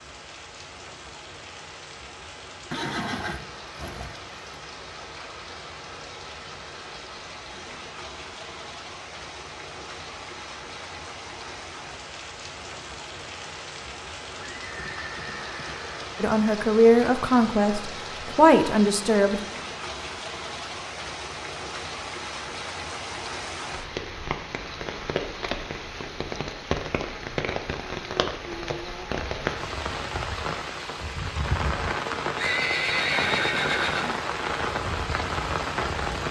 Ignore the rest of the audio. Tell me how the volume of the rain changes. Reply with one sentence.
The volume of the rain goes up.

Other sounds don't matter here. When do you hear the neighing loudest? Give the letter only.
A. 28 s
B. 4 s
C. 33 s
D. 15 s
C.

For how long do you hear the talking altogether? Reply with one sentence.
You can hear the talking for 3 seconds altogether.